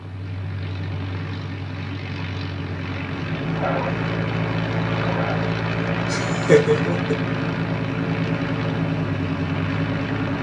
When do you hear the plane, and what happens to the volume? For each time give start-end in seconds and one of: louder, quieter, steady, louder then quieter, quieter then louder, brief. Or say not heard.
0.0-10.3 louder.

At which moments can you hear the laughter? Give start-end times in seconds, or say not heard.
6.1-7.2.